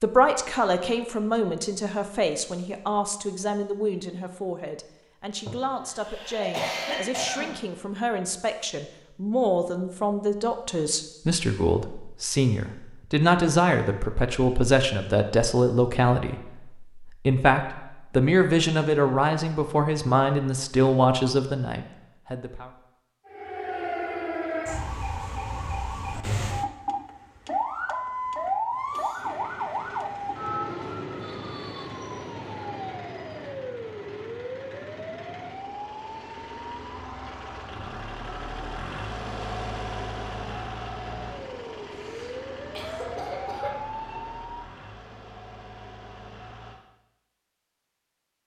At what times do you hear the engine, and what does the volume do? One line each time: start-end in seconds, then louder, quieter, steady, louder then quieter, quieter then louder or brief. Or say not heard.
29.1-46.8 louder then quieter.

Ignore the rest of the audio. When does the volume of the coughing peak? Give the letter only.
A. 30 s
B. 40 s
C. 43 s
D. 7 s
D.